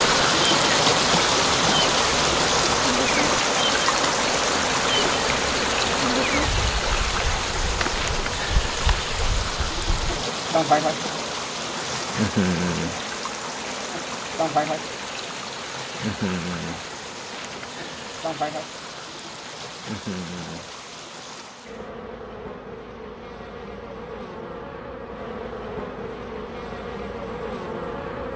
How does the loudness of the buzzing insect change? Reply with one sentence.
The volume of the buzzing insect goes down.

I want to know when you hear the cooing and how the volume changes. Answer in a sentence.
The cooing can't be heard in this clip.